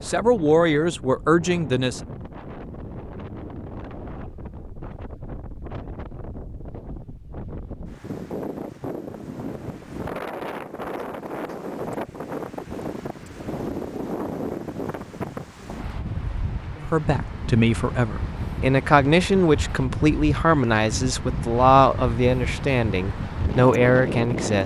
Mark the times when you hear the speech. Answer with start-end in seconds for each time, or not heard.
0.1-2.0, 16.8-24.6.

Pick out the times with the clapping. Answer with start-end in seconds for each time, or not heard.
not heard.